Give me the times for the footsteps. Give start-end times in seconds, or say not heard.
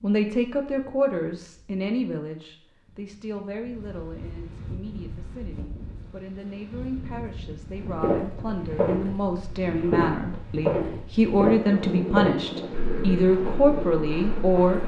8.0-14.8.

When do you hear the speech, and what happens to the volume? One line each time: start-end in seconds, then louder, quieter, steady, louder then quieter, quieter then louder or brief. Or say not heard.
0.0-14.8 quieter then louder.